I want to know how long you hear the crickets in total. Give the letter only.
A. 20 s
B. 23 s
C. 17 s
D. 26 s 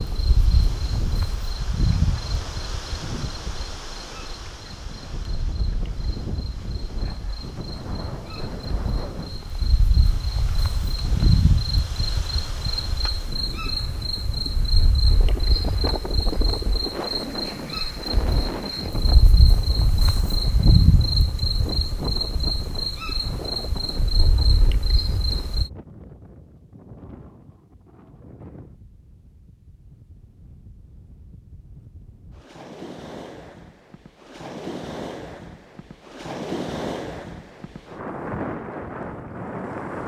D.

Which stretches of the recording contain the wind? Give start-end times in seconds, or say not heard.
0.0-40.0.